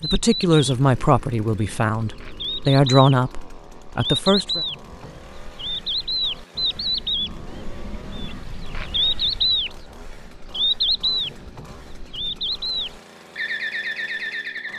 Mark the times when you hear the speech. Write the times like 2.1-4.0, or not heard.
0.0-4.6.